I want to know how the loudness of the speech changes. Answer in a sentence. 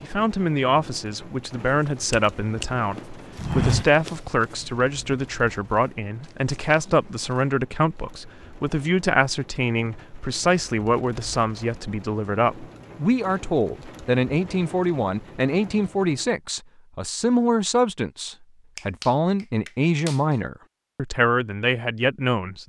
The loudness of the speech stays about the same.